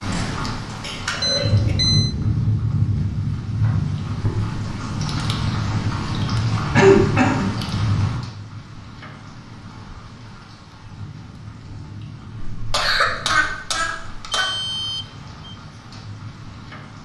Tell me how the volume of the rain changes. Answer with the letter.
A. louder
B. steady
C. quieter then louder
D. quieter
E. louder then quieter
D.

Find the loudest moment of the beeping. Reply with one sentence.
The loudest moment of the beeping is at 2 seconds.